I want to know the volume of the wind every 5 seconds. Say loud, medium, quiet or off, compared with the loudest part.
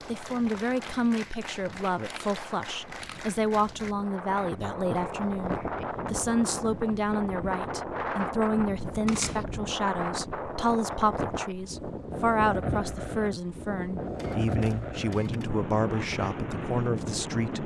medium, loud, loud, loud.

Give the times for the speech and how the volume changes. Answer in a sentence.
You can hear the speech from 0.1 to 17.6 s, at a steady volume.